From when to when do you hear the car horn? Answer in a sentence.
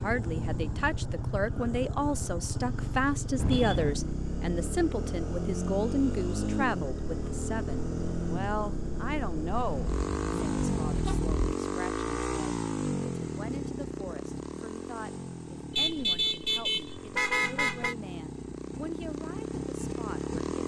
The car horn can be heard from 3.4 to 4.0 s, from 9.6 to 11.6 s and from 15.8 to 17.9 s.